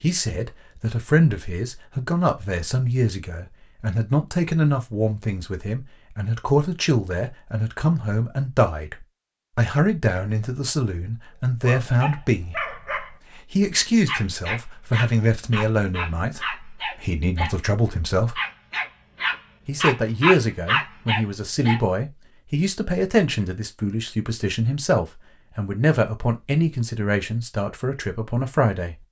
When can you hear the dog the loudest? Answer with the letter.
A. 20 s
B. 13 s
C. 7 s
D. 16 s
A.